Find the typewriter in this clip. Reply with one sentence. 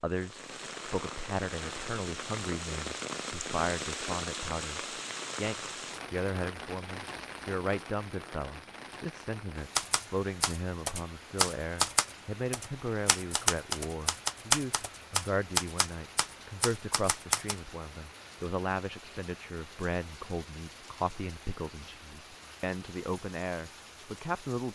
You can hear the typewriter from 9.8 to 17.6 s.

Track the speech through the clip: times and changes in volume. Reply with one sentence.
The speech can be heard from 0.0 to 24.7 s, at a steady volume.